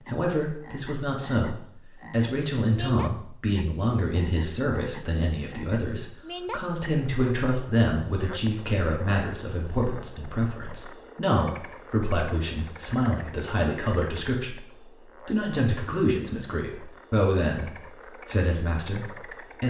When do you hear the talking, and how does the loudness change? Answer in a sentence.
You can hear the talking from 0.0 to 19.6 s, at a steady volume.